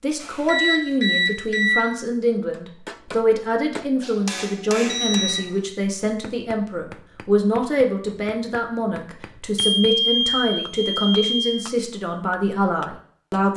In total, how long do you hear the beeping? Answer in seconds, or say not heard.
4 s.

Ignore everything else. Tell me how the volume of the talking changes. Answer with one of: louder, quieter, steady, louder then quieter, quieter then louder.
steady.